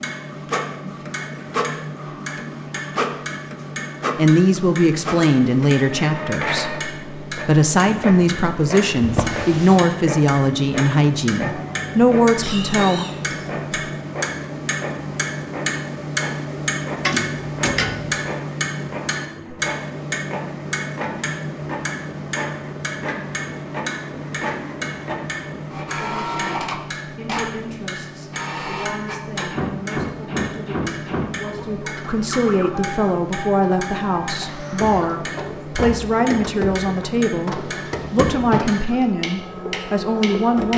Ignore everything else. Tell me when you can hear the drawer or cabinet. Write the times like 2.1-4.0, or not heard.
9.0-9.8, 17.0-18.2, 37.5-38.8.